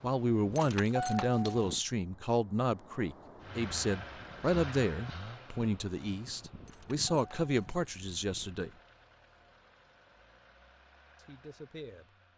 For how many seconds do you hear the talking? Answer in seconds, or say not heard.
10 s.